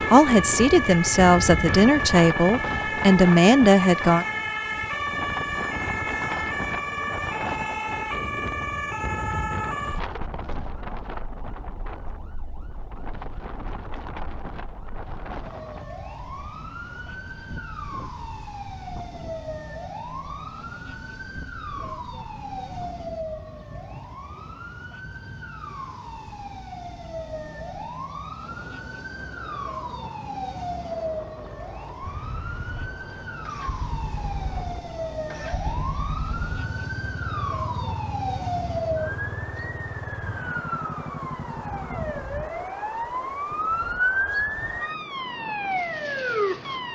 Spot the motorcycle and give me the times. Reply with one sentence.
The motorcycle can be heard from 32.0 to 42.2 s.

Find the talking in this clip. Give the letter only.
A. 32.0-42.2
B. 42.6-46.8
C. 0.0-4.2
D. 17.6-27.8
C.